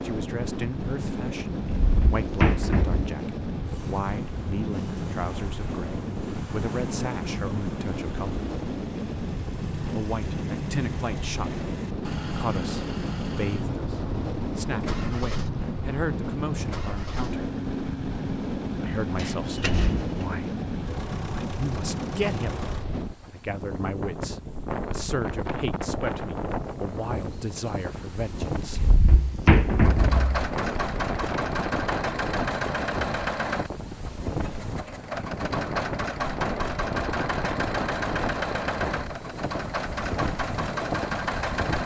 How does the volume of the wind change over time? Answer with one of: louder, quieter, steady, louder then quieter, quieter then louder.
steady.